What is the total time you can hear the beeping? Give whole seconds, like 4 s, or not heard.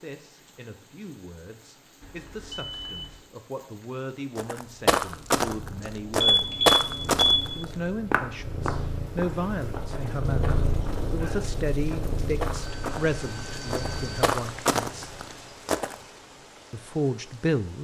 4 s.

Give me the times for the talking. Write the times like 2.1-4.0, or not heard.
0.0-6.5, 7.5-15.1, 16.7-17.7.